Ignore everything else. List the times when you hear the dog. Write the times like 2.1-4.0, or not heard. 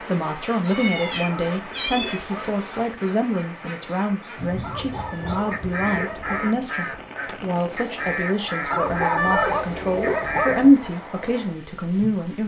0.7-2.6, 4.6-6.7, 8.7-10.7.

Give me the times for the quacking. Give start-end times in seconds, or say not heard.
0.3-10.6.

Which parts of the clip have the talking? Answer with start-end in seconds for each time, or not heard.
0.0-12.4.